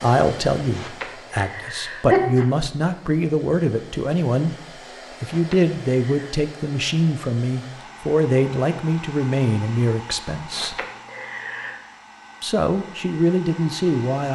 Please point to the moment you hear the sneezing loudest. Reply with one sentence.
The loudest moment of the sneezing is at 2 seconds.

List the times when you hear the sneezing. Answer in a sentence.
You can hear the sneezing from 0.7 to 2.5 s, from 5.3 to 6.3 s and from 10.4 to 11.8 s.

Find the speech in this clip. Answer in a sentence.
You can hear the speech from 0.0 to 4.5 s, from 5.2 to 10.8 s and from 12.4 to 14.3 s.